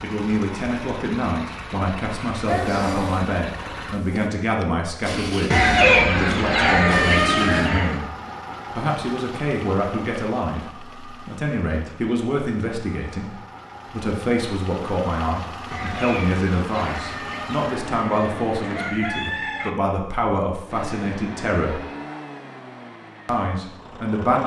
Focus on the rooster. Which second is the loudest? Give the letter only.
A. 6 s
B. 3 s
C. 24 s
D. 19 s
A.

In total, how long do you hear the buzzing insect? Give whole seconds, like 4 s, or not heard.
2 s.